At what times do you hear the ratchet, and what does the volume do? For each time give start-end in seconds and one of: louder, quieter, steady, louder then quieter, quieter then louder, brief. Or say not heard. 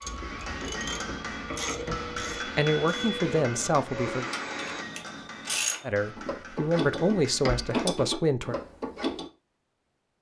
0.0-9.2 quieter then louder.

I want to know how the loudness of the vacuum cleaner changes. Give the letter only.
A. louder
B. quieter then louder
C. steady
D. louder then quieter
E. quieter
A.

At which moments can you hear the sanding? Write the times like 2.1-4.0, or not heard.
not heard.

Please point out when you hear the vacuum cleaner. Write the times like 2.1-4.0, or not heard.
0.0-4.8.